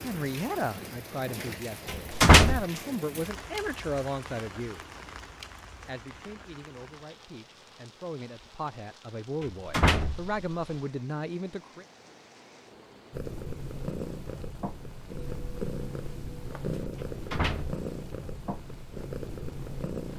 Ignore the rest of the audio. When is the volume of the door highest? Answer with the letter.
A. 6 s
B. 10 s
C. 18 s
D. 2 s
D.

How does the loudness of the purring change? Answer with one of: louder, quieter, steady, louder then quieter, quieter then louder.
steady.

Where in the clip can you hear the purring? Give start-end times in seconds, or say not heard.
13.1-20.1.